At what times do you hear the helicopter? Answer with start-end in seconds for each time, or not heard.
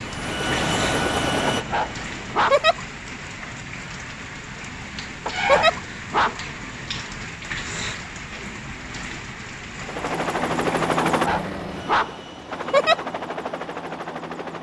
0.0-2.5, 9.8-14.5.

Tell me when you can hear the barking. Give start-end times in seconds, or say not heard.
1.5-2.6, 5.2-6.4, 11.1-12.2.